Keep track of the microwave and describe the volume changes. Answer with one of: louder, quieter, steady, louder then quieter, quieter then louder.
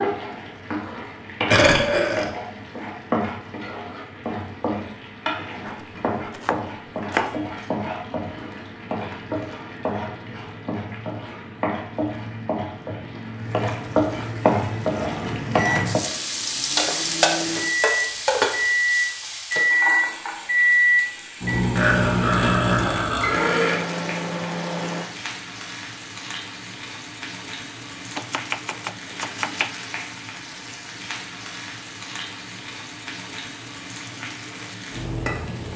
louder then quieter.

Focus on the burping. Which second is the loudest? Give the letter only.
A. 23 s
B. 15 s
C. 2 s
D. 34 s
C.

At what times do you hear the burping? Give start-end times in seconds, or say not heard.
1.5-2.2, 21.8-23.8.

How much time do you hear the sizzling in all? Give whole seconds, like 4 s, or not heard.
36 s.